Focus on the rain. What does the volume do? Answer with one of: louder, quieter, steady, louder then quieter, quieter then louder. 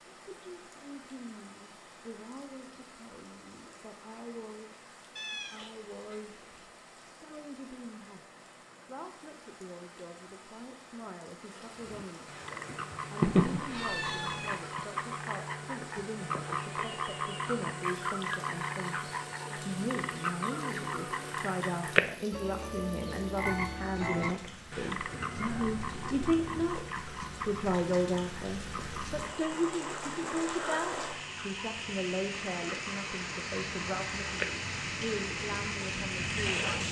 louder.